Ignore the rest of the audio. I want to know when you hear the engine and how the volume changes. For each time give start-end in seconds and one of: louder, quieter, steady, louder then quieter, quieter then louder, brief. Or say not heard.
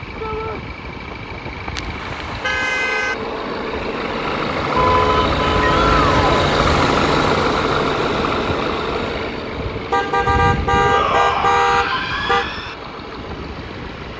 0.0-14.1 louder then quieter.